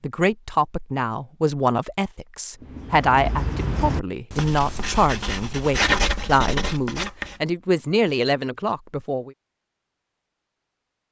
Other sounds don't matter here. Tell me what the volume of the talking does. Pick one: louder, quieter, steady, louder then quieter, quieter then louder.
steady.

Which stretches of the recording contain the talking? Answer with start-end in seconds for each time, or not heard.
0.0-9.3.